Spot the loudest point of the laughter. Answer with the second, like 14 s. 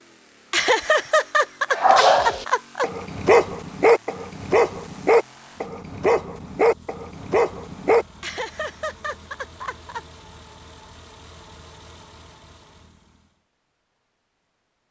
1 s.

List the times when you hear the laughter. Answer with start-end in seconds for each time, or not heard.
0.5-2.9, 8.2-10.0.